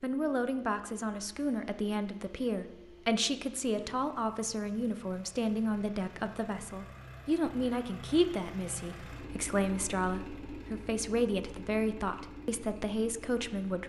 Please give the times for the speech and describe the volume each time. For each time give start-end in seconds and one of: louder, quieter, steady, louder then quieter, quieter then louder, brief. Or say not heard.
0.0-13.8 steady.